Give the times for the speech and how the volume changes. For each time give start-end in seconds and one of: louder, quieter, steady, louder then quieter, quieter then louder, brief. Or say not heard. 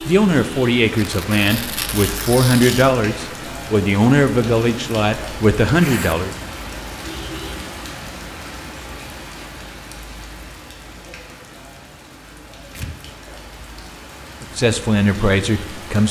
0.1-6.3 steady
14.4-16.0 brief.